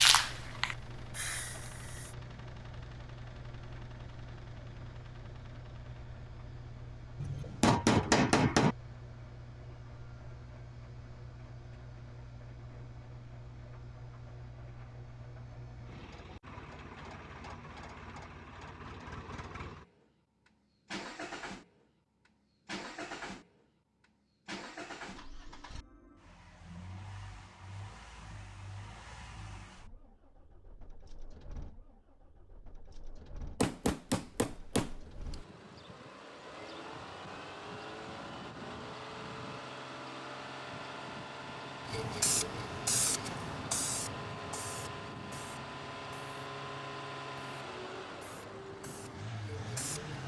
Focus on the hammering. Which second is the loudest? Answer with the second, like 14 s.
8 s.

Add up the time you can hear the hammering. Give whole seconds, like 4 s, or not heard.
3 s.